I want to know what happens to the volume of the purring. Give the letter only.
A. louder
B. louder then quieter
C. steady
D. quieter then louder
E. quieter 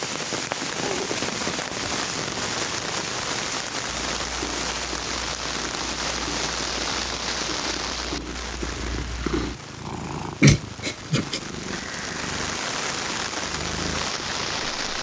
B.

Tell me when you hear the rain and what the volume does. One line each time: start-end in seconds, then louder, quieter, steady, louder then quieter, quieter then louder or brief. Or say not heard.
0.0-14.9 quieter then louder.